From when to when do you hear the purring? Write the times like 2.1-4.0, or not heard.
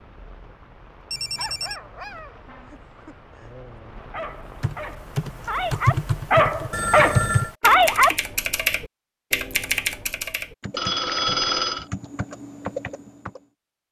not heard.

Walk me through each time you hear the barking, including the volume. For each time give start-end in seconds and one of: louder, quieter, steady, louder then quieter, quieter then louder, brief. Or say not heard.
1.4-8.2 quieter then louder.